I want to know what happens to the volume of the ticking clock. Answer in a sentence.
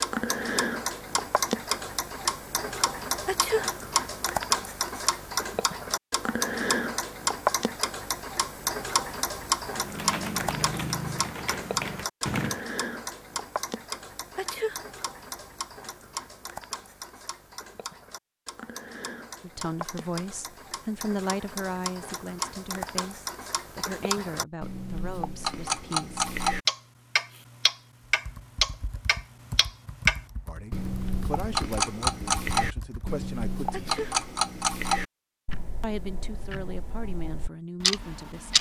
The loudness of the ticking clock goes down, then up.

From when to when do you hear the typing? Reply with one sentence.
You can hear the typing from 9.7 to 12.7 s and from 28.0 to 33.2 s.